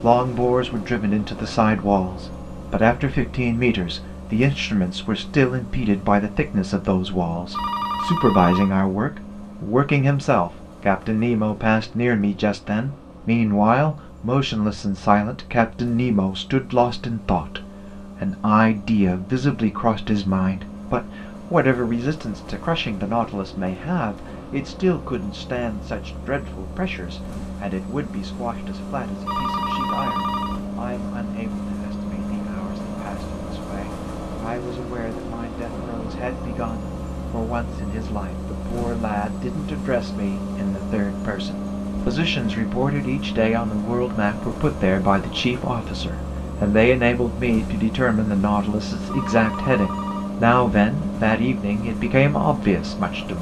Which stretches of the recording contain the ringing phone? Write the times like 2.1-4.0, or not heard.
7.5-8.8, 29.2-30.6, 49.0-50.4.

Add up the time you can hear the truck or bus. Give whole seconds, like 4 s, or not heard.
53 s.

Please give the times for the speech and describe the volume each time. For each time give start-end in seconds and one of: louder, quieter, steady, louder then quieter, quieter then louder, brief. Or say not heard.
0.0-53.3 quieter then louder.